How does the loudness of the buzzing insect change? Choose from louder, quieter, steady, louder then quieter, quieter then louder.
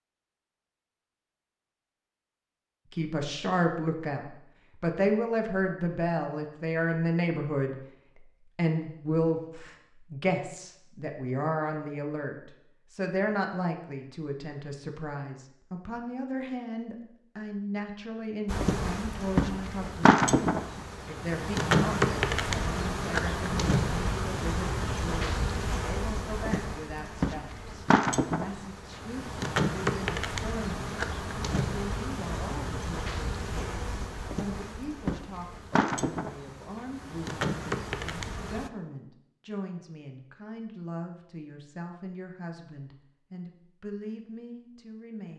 quieter.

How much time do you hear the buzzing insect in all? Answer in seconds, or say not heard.
20 s.